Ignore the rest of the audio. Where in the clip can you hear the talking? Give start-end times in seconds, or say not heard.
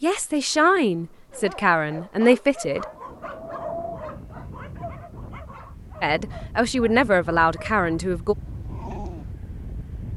0.0-2.9, 6.0-8.3.